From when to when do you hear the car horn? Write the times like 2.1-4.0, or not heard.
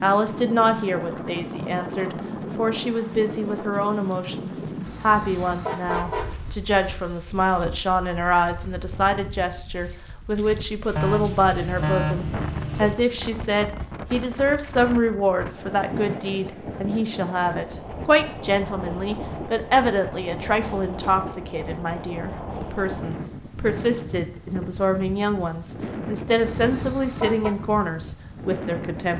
4.8-6.3, 10.9-12.9, 26.6-27.6.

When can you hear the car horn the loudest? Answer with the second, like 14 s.
12 s.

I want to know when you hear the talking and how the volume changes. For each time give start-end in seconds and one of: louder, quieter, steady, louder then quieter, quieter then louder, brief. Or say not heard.
0.0-29.1 steady.